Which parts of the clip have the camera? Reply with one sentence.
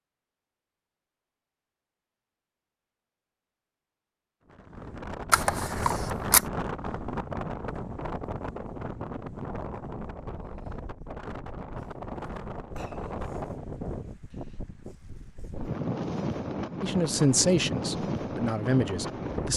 The camera can be heard from 5.3 to 6.4 s.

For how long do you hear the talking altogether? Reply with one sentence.
The talking can be heard for 3 seconds in total.